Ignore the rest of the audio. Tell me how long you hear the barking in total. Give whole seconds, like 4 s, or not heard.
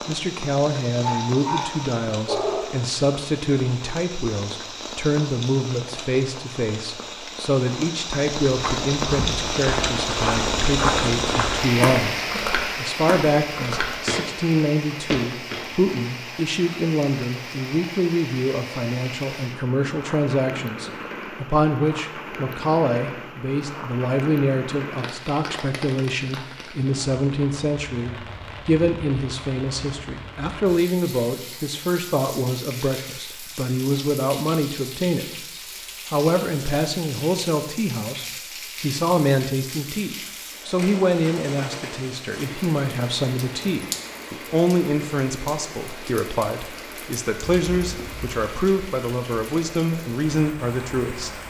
2 s.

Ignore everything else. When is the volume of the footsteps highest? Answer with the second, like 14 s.
11 s.